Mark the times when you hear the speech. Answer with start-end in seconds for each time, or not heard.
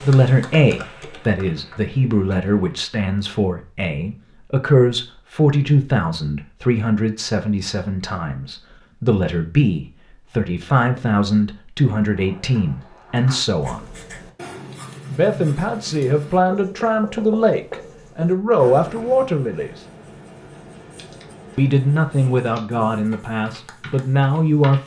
0.0-13.8, 15.1-19.8, 21.6-24.8.